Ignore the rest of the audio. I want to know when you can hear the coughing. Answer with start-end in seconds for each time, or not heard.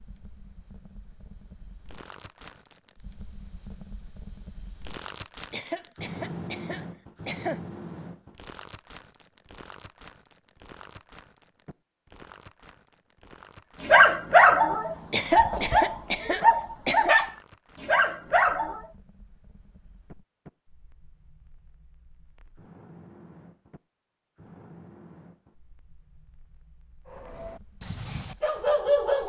5.5-7.6, 15.1-17.1.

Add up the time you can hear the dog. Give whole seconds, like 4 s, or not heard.
7 s.